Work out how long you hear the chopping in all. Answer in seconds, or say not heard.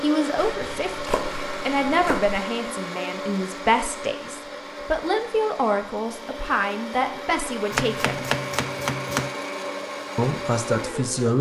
4 s.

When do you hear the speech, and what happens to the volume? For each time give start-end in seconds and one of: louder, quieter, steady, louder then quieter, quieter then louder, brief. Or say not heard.
0.0-8.2 steady
10.2-11.3 brief.